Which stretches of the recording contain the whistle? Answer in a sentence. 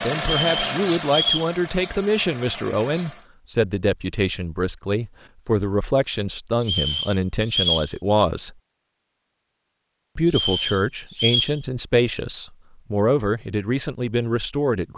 You can hear the whistle from 0.2 to 1.5 s, from 6.6 to 7.9 s and from 10.2 to 11.6 s.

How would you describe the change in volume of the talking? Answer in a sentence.
The loudness of the talking stays about the same.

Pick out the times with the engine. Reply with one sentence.
You can hear the engine from 0.0 to 3.2 s.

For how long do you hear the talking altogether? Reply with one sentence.
The talking can be heard for 13 seconds in total.